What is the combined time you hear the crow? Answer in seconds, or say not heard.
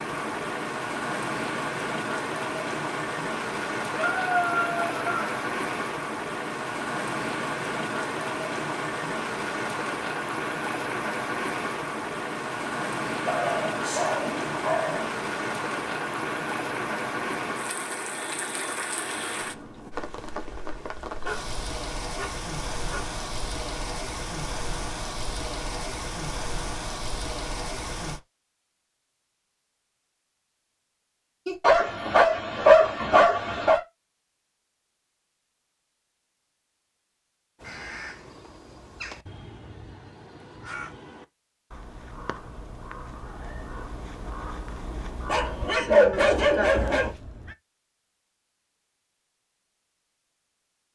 10 s.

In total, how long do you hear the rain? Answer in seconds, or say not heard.
28 s.